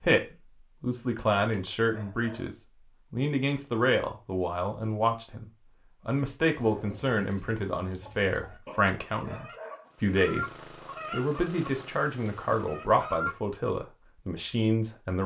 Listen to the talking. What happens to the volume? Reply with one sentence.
The volume of the talking stays about the same.